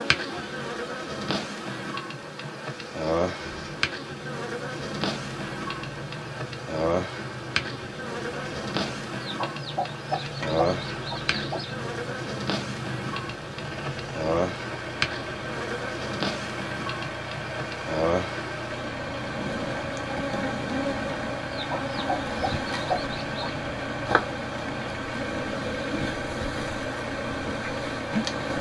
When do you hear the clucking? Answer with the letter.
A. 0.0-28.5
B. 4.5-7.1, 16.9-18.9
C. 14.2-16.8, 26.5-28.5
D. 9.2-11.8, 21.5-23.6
D.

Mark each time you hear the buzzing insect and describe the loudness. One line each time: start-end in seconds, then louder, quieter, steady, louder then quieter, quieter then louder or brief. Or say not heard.
0.0-28.5 steady.